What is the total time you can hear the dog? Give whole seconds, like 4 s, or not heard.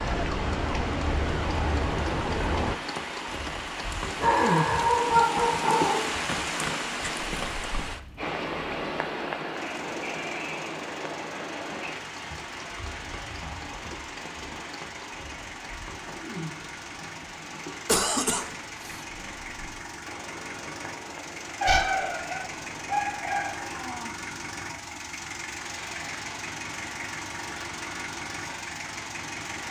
4 s.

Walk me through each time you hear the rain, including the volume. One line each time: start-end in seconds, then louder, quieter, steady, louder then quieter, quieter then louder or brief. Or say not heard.
0.0-29.6 quieter.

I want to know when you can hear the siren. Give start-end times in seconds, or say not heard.
0.0-2.8.